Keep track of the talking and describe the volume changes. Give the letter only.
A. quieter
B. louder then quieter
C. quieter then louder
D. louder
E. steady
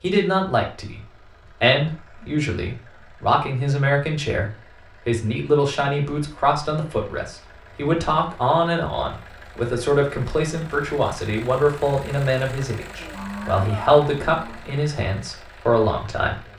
E.